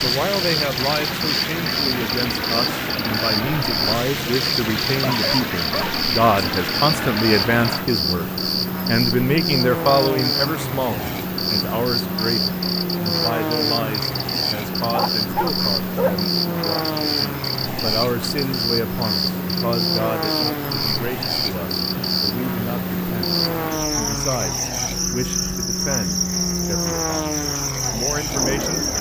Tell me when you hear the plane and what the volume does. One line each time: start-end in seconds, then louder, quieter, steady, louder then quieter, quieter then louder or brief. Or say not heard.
0.0-28.9 steady.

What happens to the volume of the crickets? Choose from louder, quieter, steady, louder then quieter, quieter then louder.
steady.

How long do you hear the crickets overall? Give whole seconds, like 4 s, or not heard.
29 s.